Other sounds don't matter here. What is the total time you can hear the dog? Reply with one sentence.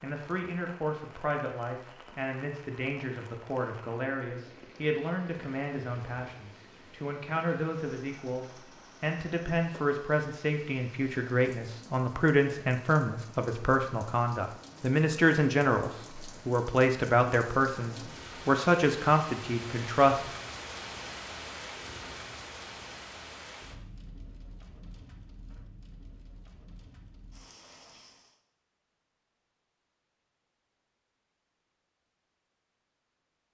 The dog can't be heard in this clip.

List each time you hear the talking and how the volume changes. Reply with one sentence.
The talking can be heard from 0.0 to 20.2 s, getting louder.